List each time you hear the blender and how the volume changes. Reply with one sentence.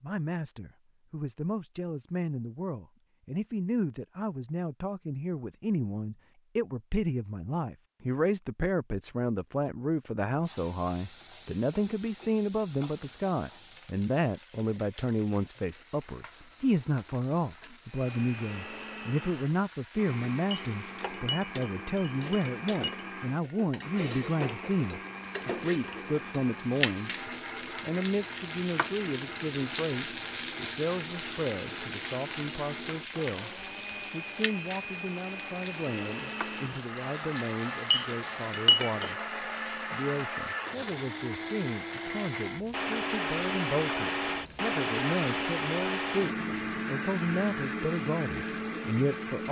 The blender can be heard from 17.9 to 49.4 s, getting louder.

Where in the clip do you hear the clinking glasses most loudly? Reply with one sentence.
The loudest moment of the clinking glasses is at 39 seconds.